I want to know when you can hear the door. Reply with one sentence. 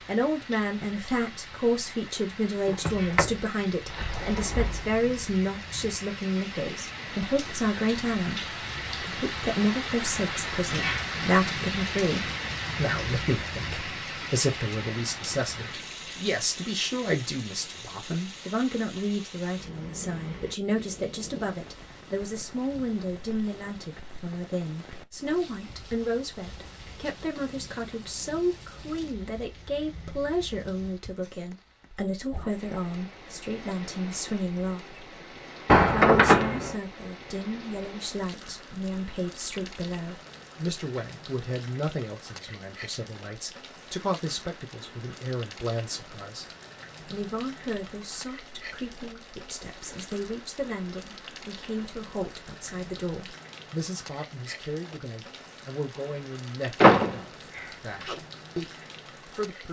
You can hear the door from 2.6 to 5.0 s, from 35.6 to 36.8 s and from 56.8 to 58.1 s.